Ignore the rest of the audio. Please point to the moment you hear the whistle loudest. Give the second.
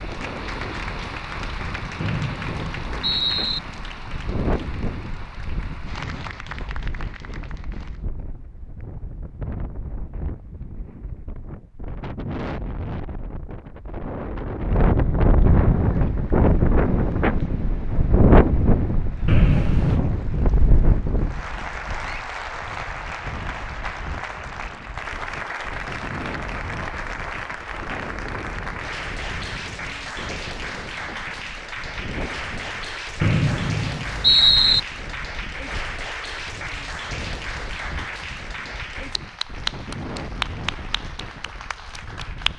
34 s.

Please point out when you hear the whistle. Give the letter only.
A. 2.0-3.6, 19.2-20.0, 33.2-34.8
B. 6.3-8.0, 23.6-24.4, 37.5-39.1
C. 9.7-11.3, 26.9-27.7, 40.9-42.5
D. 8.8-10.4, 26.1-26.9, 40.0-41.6
A.